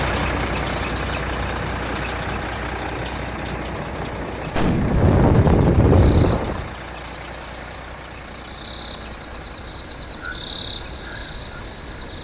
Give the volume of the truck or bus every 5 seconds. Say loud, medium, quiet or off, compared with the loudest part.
loud, medium, quiet.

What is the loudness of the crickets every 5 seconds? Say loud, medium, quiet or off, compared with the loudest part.
off, medium, loud.